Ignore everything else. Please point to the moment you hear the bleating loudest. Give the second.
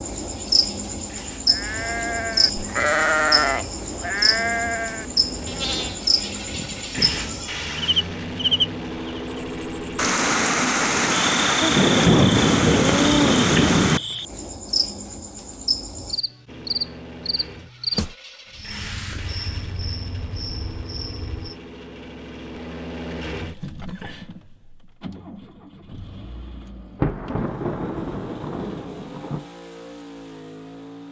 3 s.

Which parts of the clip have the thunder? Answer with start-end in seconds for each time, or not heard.
9.9-14.0, 27.0-29.4.